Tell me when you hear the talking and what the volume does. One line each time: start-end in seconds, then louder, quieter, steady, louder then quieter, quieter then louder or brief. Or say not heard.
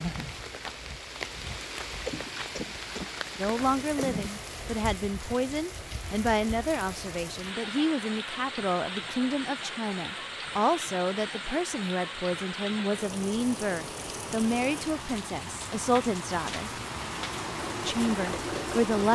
3.4-16.7 steady
17.9-19.1 brief.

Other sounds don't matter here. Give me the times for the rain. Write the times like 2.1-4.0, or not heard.
0.0-19.1.